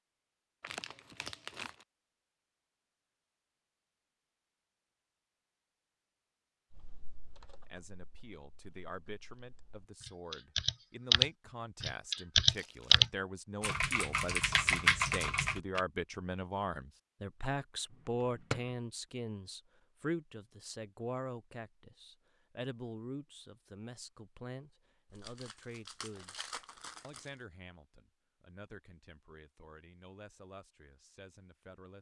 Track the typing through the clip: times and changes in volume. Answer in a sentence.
You can hear the typing from 6.7 to 15.8 s, getting louder then quieter.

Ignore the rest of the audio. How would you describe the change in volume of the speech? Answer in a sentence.
The volume of the speech goes up, then down.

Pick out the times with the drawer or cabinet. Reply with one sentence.
You can hear the drawer or cabinet from 17.9 to 18.8 s.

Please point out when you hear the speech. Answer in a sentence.
You can hear the speech from 7.7 to 31.9 s.